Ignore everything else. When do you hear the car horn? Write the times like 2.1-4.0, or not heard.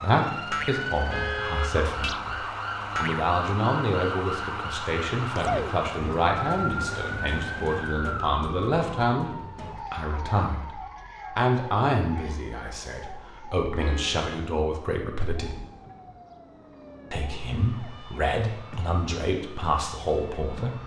1.1-1.7, 13.8-14.3.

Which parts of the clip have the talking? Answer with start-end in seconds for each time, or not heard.
0.0-15.5, 17.1-20.8.